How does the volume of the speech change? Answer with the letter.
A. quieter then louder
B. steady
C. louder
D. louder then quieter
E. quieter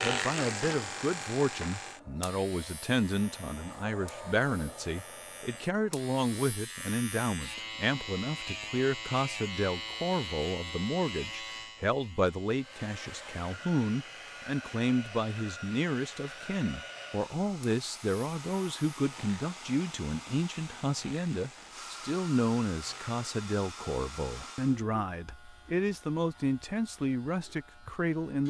B.